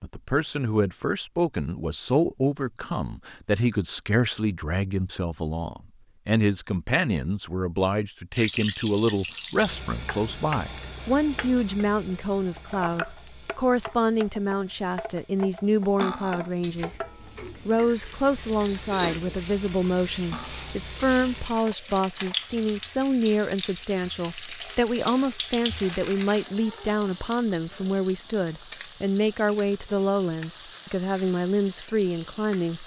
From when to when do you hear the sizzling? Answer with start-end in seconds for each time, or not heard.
8.3-32.8.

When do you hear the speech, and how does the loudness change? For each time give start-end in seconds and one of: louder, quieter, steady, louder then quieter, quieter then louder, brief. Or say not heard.
0.0-16.9 steady
17.6-32.8 steady.